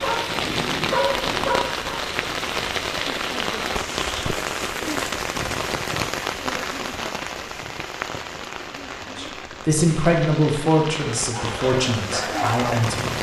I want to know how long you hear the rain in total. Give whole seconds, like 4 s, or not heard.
13 s.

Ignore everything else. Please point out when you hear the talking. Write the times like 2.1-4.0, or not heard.
9.2-13.1.